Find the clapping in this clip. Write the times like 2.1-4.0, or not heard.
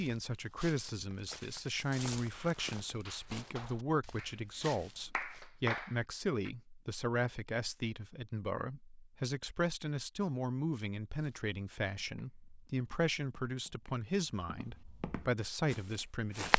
0.7-6.5.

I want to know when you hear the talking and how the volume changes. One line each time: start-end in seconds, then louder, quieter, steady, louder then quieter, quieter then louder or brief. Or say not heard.
0.0-16.5 steady.